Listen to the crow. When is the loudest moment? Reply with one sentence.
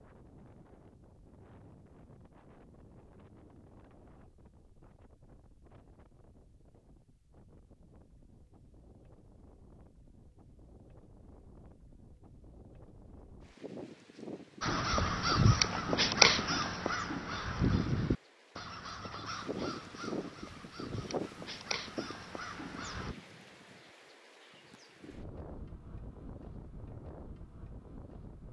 The loudest moment of the crow is at 16 seconds.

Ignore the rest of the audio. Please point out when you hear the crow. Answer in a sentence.
The crow can be heard from 14.6 to 23.1 s.